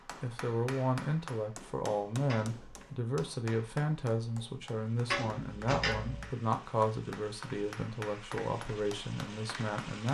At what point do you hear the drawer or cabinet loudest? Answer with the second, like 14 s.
6 s.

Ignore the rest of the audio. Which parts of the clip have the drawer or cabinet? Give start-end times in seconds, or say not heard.
2.2-2.9, 5.0-6.3.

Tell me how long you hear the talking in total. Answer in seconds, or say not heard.
10 s.